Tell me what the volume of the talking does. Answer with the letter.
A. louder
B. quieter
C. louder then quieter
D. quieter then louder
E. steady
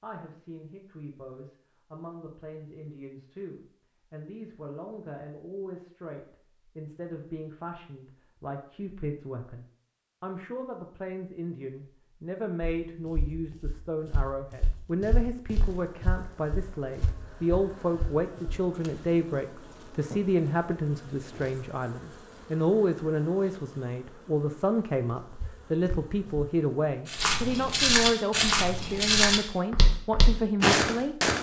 A.